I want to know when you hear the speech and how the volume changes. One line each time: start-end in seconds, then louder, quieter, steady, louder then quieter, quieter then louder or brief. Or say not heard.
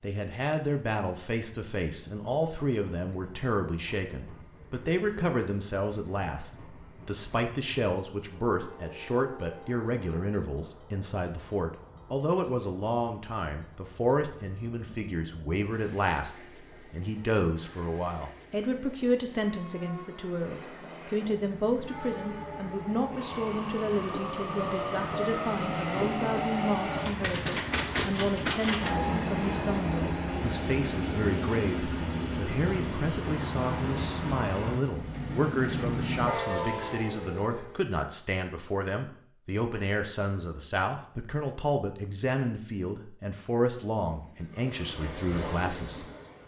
0.0-46.0 steady.